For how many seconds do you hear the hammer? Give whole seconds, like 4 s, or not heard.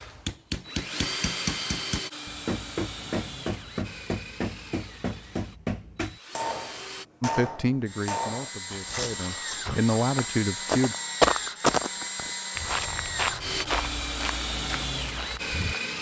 8 s.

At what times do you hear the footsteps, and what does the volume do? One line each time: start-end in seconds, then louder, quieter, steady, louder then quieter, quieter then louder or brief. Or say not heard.
8.7-15.9 louder then quieter.